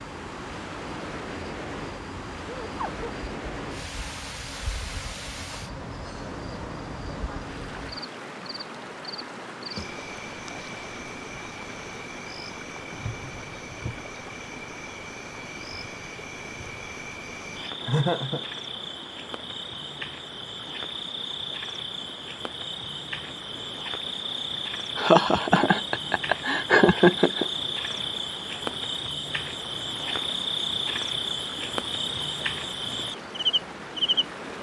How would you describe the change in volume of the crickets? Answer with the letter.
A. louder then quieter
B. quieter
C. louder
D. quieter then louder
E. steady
C.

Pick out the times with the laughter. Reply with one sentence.
You can hear the laughter from 2.6 to 3.1 s, from 17.8 to 18.4 s and from 24.9 to 27.4 s.